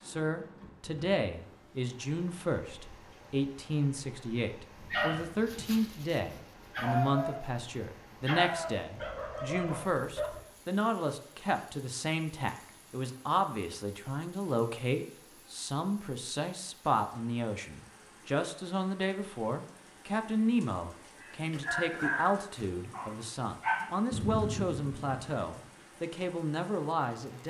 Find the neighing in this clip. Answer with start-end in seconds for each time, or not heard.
not heard.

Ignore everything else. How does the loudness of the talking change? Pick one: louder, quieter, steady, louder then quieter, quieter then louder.
steady.